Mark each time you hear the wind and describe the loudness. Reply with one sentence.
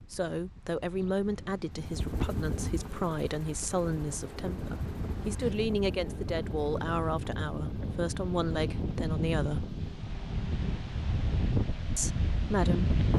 You can hear the wind from 0.0 to 13.1 s, getting louder.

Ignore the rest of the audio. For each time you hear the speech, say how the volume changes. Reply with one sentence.
You can hear the speech from 0.0 to 9.7 s, at a steady volume; and briefly from 11.9 to 12.9 s.